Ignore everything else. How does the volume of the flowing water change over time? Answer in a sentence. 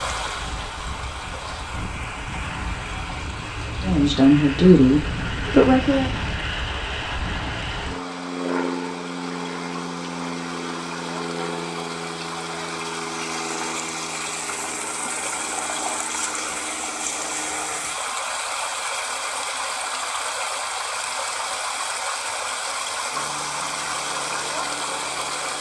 The loudness of the flowing water goes up.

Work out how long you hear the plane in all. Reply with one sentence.
The plane can be heard for 20 seconds in total.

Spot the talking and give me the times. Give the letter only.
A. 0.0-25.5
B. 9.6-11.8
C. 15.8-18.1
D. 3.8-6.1
D.